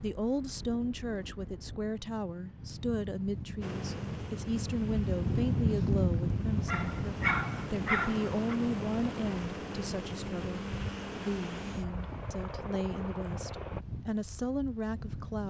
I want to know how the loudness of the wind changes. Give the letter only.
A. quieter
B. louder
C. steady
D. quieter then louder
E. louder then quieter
E.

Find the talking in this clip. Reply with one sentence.
You can hear the talking from 0.0 to 15.4 s.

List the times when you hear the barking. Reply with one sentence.
You can hear the barking from 6.7 to 8.6 s.